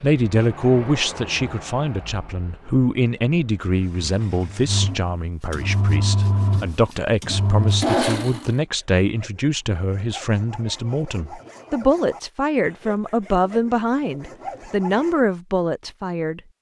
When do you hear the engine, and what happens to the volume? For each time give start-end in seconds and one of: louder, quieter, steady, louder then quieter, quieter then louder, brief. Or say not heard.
0.0-8.6 quieter then louder.